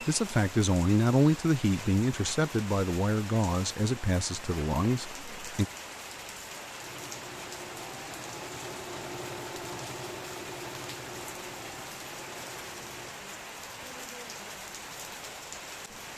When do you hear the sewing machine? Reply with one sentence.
You can hear the sewing machine from 6.8 to 13.2 s.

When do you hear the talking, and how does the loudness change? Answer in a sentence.
You can hear the talking from 0.1 to 5.7 s, getting quieter.